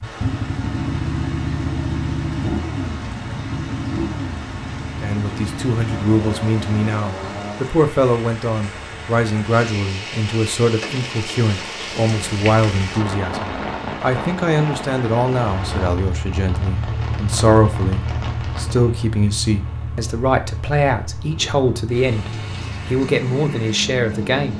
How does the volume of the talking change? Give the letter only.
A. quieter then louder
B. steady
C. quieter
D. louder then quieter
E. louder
B.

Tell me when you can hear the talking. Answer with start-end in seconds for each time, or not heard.
5.0-24.5.